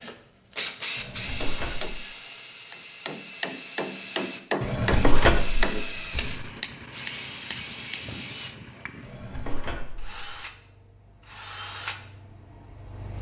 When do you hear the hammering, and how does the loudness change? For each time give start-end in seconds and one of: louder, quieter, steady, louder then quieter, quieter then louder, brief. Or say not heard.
1.4-9.2 louder then quieter.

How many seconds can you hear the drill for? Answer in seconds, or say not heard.
13 s.